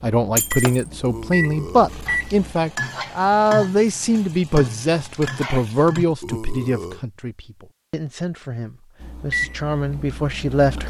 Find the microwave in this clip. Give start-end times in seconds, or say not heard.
0.2-2.5, 9.0-10.8.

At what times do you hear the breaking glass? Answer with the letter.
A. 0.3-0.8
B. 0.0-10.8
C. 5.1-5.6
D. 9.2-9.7
A.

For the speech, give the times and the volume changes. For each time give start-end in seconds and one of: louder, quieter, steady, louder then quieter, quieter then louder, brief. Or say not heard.
0.0-10.8 quieter.